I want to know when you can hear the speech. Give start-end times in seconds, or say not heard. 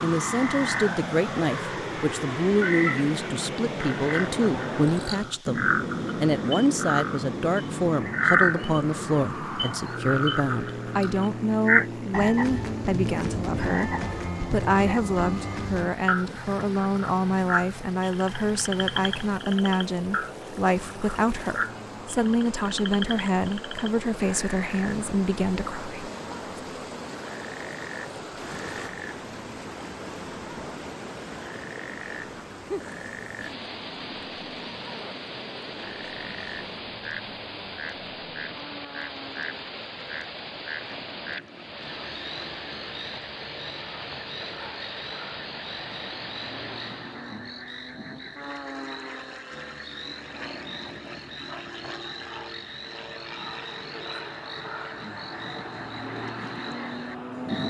0.0-26.0.